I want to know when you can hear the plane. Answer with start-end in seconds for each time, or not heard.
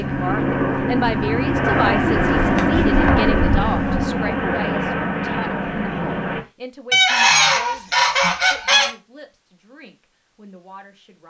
0.0-6.5.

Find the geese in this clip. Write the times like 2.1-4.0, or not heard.
1.6-4.0, 6.9-8.9.